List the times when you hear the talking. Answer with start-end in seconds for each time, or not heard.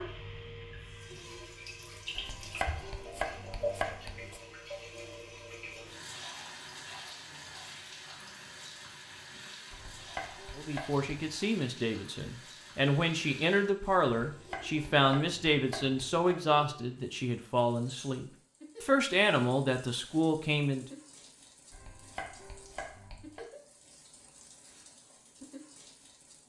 10.6-20.9.